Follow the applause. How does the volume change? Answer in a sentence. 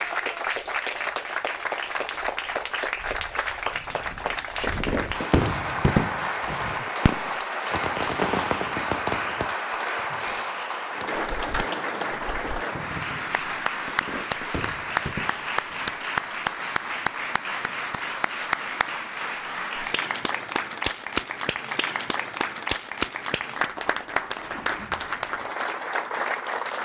The volume of the applause stays about the same.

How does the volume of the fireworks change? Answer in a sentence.
The volume of the fireworks goes down.